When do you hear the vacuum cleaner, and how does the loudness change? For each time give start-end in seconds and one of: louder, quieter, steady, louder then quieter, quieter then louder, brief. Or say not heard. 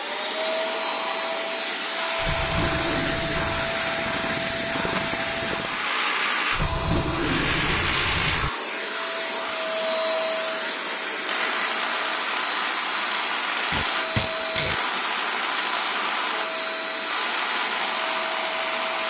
0.0-19.0 steady.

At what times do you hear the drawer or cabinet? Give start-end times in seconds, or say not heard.
2.1-3.8, 6.5-8.5.